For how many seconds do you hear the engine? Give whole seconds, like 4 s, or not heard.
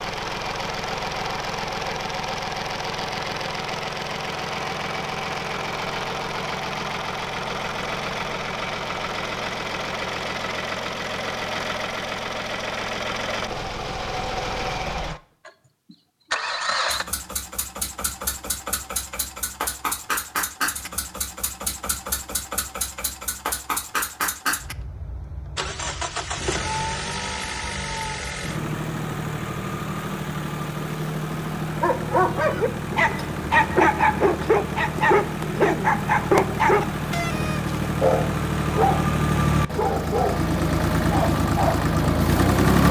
43 s.